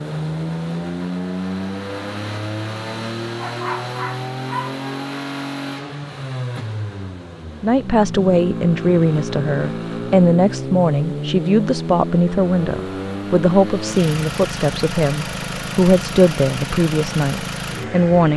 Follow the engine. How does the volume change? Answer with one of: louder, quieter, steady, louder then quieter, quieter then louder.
steady.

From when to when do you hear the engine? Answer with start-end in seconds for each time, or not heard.
0.0-18.3.